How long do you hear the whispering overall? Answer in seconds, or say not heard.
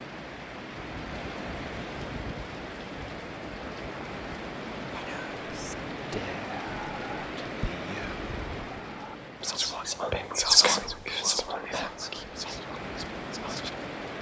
9 s.